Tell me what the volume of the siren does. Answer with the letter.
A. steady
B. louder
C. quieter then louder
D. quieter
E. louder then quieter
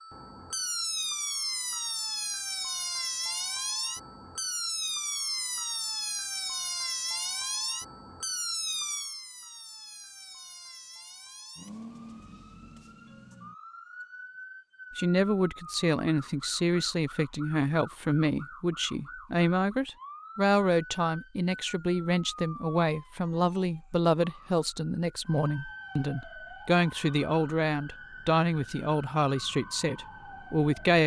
D.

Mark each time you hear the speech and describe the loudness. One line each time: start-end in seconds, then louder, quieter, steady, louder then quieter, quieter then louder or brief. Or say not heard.
14.9-31.0 steady.